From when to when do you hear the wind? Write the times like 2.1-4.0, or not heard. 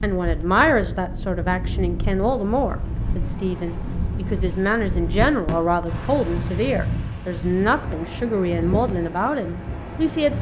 0.0-10.3.